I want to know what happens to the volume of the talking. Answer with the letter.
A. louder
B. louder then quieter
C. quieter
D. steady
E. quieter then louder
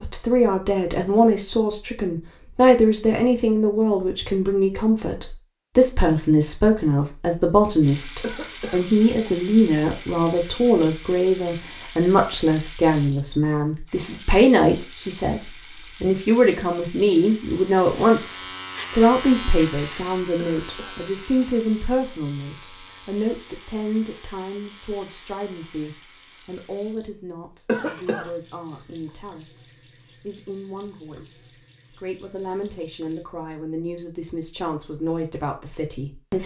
C.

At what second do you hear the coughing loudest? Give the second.
28 s.